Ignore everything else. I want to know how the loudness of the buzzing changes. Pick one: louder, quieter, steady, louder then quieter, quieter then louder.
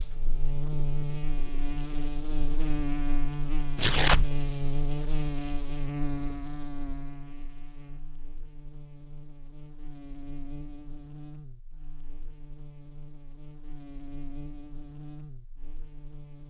quieter.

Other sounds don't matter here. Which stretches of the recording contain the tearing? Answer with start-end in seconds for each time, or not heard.
3.8-4.4.